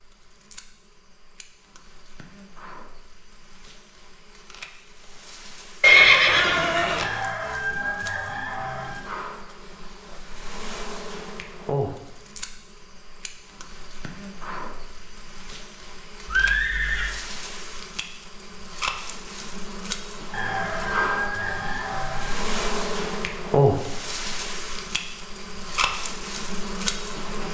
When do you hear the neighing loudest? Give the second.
6 s.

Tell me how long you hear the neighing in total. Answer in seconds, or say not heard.
2 s.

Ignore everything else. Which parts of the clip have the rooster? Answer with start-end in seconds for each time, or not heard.
7.0-9.0, 20.3-22.4.